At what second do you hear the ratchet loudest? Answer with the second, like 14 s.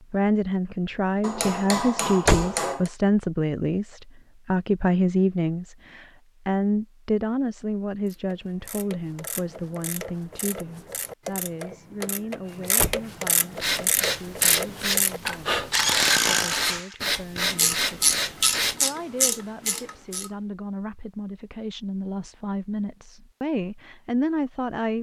16 s.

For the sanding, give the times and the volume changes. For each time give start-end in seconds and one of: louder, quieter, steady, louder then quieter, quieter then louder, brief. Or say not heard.
13.6-18.8 steady.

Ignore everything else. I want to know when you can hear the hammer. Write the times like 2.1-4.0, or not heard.
1.2-2.9.